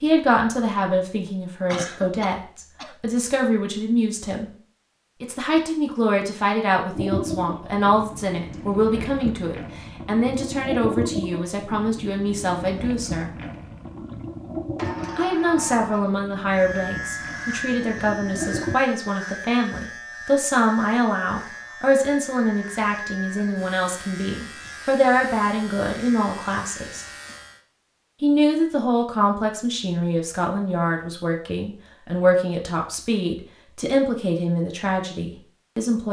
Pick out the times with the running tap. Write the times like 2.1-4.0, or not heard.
7.0-18.8.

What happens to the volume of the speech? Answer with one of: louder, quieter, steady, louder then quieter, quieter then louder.
steady.